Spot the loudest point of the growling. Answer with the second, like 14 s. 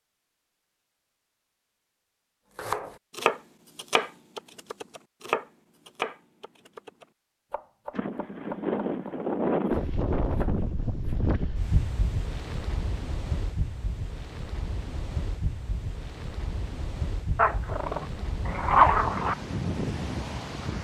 19 s.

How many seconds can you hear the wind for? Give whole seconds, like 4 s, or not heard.
13 s.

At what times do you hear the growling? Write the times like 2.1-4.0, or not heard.
17.4-19.4.